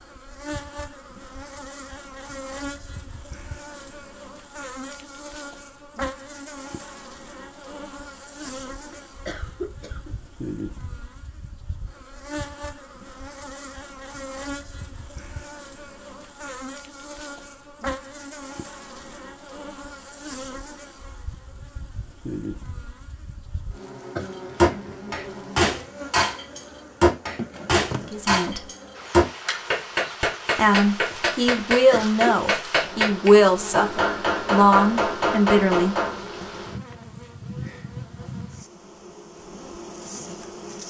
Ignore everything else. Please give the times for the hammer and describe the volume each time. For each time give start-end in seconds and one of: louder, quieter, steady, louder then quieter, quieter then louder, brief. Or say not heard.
24.6-36.2 steady.